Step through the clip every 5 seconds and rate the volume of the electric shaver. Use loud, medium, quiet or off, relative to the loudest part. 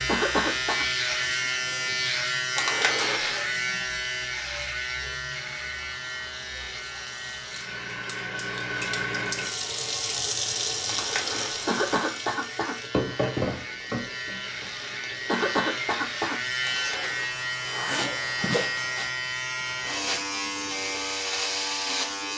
loud, medium, medium, loud, loud.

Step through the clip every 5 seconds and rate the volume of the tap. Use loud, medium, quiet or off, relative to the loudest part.
quiet, loud, loud, medium, off.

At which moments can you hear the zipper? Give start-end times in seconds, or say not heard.
2.5-3.4, 10.8-12.2, 16.6-19.1.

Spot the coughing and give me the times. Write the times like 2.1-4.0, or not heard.
0.1-0.8, 11.7-12.8, 15.2-16.4.